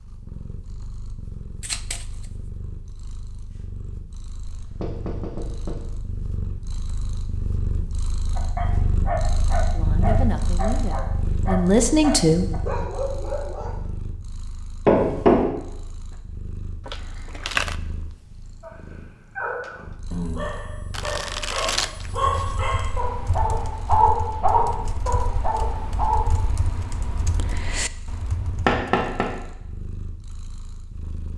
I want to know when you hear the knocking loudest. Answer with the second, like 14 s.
15 s.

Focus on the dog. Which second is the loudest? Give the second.
24 s.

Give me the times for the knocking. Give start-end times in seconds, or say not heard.
4.5-5.8, 14.8-15.4, 28.6-29.2.